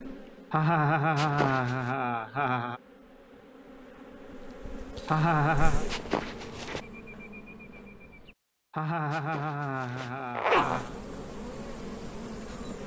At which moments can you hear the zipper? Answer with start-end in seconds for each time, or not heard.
1.1-1.9, 5.8-6.8, 9.1-10.8.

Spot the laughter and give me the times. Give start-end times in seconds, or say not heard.
0.5-2.8, 5.0-5.8, 8.7-11.0.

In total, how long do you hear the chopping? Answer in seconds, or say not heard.
not heard.